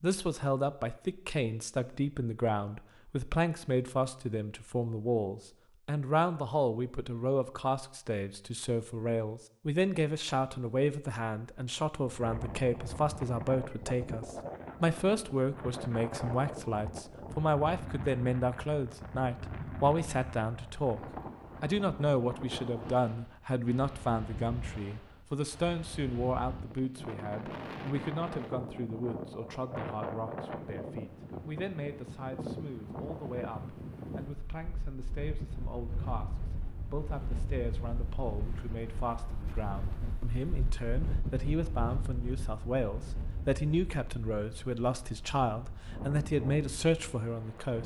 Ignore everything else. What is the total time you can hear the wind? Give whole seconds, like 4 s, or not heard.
36 s.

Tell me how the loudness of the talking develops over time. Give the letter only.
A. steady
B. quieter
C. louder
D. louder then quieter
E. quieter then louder
E.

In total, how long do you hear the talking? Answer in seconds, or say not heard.
47 s.